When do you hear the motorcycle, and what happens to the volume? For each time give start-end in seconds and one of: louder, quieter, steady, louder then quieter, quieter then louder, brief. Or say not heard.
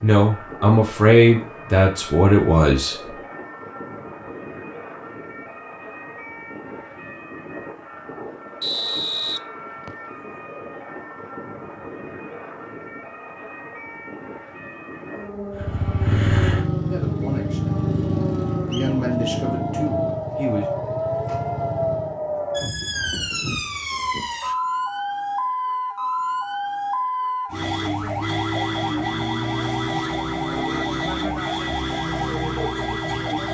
15.5-22.2 quieter.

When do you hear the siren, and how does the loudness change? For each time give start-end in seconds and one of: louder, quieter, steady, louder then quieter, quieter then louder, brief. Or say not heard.
0.0-33.4 louder.